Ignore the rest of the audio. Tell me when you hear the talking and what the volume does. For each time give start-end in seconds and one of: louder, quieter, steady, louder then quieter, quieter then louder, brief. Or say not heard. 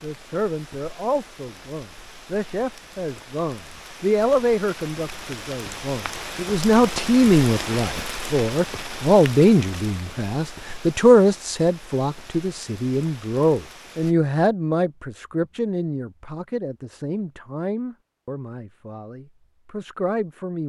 0.0-20.6 louder then quieter.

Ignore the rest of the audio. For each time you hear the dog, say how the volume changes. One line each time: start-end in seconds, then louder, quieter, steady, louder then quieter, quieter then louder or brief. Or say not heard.
not heard.